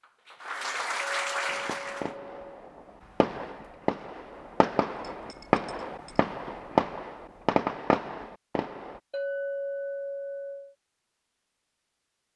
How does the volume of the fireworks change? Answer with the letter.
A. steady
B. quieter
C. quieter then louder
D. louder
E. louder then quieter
D.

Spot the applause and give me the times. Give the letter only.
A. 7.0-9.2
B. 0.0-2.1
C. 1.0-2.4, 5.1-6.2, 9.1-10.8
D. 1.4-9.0
B.